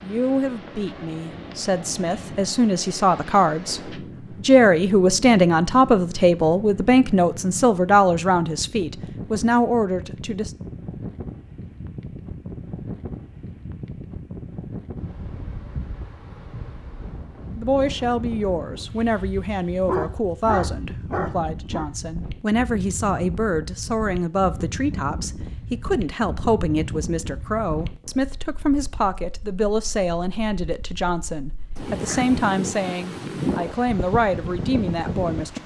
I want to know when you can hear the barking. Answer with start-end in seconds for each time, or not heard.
19.9-21.9.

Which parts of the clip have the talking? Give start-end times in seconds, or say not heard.
0.0-10.5, 17.6-35.6.